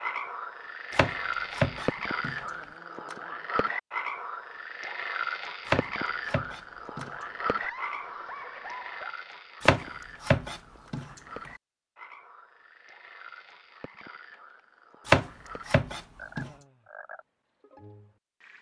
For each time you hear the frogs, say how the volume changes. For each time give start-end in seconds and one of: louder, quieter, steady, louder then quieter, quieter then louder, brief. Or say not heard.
0.0-18.5 quieter.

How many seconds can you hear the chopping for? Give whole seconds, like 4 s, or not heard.
6 s.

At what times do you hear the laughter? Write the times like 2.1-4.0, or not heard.
2.4-3.7, 7.6-9.2, 16.4-16.9.